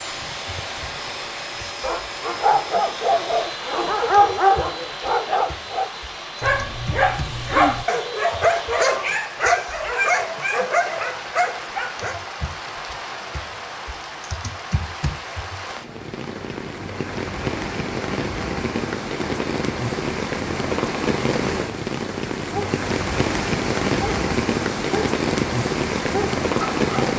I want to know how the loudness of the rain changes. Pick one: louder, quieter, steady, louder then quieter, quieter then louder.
louder.